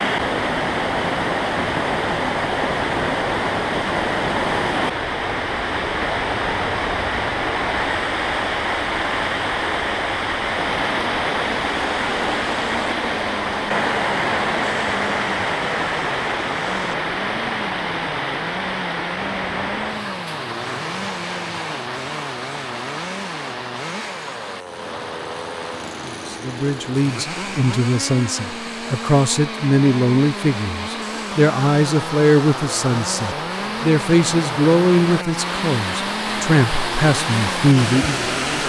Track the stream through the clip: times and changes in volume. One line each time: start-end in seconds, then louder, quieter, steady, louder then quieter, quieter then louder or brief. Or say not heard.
0.0-38.6 quieter then louder.